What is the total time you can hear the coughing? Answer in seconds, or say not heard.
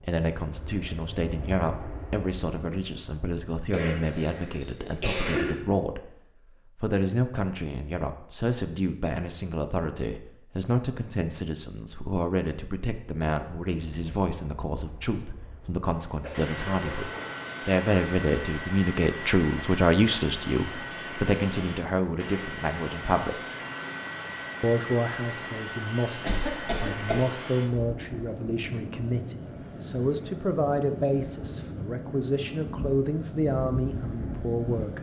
4 s.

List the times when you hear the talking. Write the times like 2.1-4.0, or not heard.
0.0-6.1, 6.8-23.4, 24.6-34.9.